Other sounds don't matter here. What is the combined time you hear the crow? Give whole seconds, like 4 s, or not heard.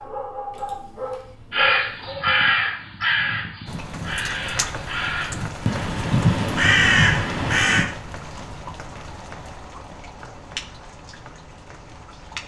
6 s.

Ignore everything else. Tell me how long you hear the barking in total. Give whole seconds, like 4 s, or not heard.
2 s.